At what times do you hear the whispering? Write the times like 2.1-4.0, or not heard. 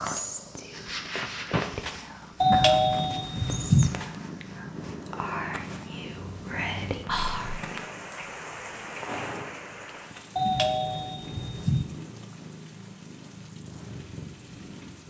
0.0-7.6.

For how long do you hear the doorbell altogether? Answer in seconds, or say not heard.
3 s.